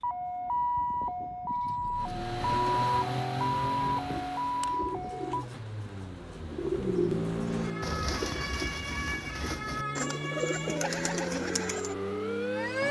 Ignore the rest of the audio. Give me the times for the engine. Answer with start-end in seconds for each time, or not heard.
1.9-8.1, 9.4-12.8.